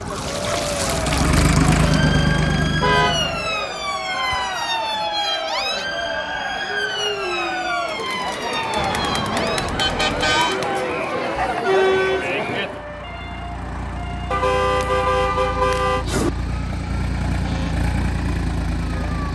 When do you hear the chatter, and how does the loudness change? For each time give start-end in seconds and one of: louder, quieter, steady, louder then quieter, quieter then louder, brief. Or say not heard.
0.1-12.8 louder.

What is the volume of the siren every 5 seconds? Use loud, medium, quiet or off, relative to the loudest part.
loud, loud, medium, medium.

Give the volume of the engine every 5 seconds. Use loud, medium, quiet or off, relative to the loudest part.
loud, off, quiet, medium.